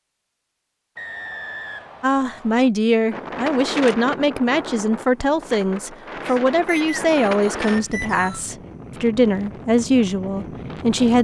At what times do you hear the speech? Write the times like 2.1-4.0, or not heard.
2.0-11.2.